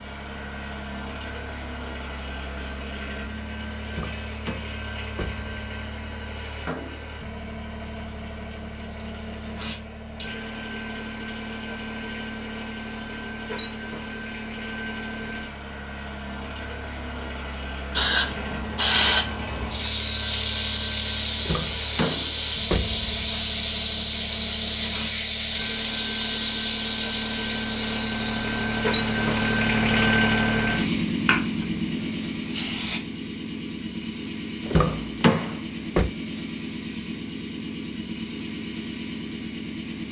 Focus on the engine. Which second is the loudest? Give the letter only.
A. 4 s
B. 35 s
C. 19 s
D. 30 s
D.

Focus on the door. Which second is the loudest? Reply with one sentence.
The volume of the door peaks at 35 seconds.